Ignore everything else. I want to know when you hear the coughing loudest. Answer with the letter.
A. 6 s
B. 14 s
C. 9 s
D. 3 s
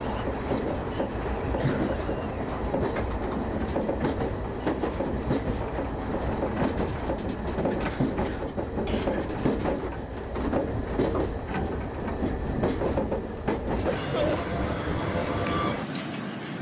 B.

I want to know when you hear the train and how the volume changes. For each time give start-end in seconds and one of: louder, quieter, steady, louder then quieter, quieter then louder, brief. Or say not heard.
0.0-16.5 steady.